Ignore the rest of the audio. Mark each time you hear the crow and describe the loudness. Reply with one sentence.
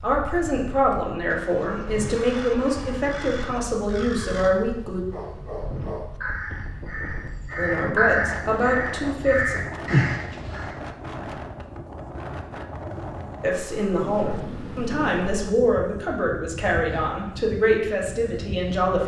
You can hear the crow from 2.0 to 10.8 s, getting louder.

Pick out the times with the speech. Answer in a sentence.
You can hear the speech from 0.0 to 5.0 s, from 7.5 to 9.6 s and from 13.4 to 19.0 s.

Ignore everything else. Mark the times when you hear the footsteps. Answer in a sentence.
You can't hear the footsteps here.